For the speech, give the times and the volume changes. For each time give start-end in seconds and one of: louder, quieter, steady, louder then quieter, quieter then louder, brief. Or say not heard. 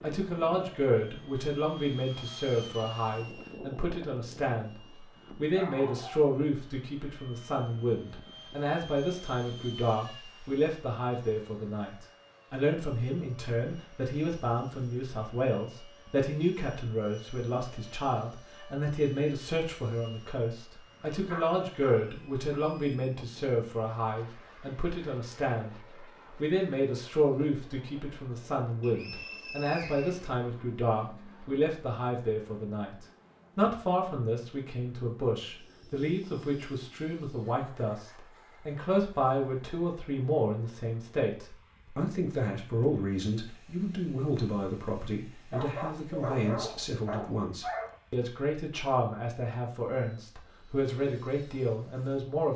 0.0-52.5 steady.